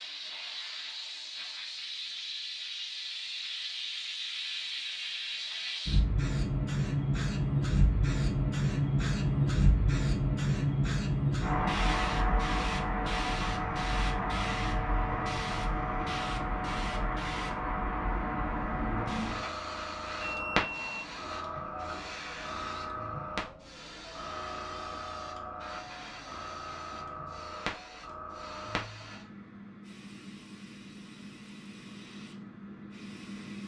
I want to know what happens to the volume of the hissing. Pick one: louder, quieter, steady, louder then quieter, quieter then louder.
louder then quieter.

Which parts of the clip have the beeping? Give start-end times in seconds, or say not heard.
20.2-21.1.